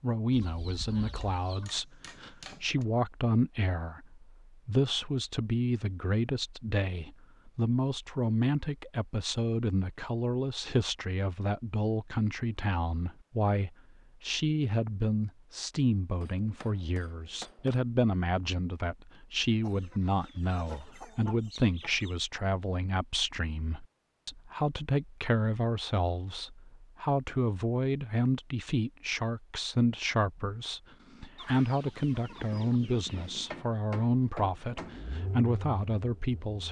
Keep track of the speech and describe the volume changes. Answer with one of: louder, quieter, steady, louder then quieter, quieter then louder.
steady.